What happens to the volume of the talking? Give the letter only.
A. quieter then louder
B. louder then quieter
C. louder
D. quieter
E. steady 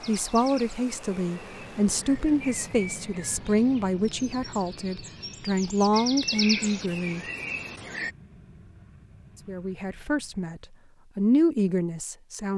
E.